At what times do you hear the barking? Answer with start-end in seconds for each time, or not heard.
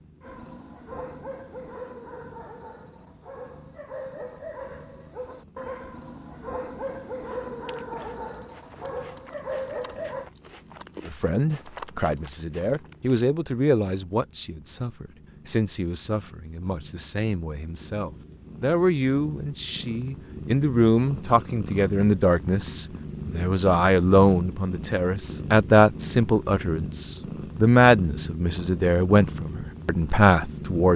0.2-10.3.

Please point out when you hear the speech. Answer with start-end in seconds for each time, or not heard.
11.1-30.9.